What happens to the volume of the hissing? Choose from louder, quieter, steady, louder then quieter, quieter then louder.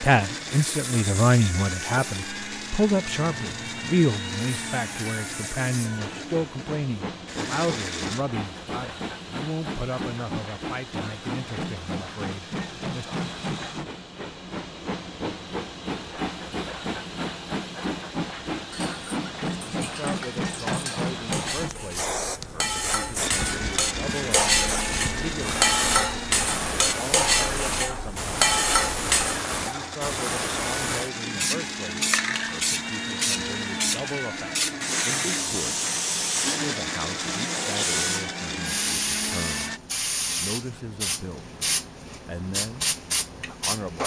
louder.